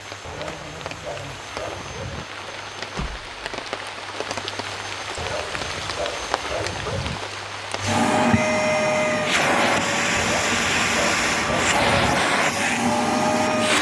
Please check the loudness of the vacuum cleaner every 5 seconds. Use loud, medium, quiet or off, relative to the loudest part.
quiet, loud, loud.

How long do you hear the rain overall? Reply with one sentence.
You can hear the rain for 8 seconds altogether.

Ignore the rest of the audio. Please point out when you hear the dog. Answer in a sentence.
You can hear the dog from 0.2 to 2.2 s, from 5.2 to 7.2 s and from 10.2 to 12.2 s.